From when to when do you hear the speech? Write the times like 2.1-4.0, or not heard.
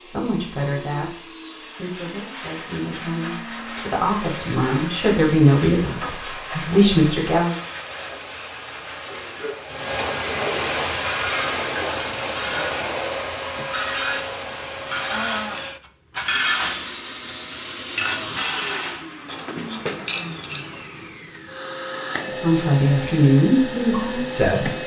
0.1-7.5, 22.4-24.8.